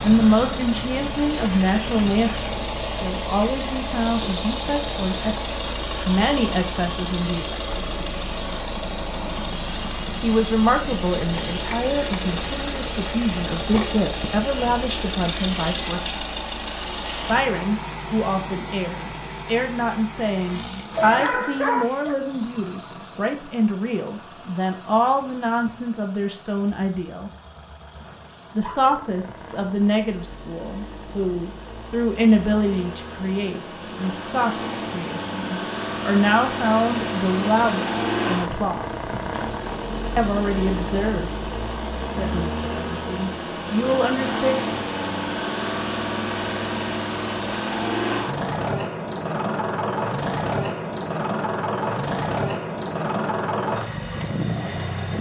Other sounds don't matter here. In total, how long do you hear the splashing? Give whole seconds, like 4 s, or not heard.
not heard.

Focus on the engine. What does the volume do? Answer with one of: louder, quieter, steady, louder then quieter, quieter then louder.
quieter then louder.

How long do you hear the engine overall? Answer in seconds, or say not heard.
55 s.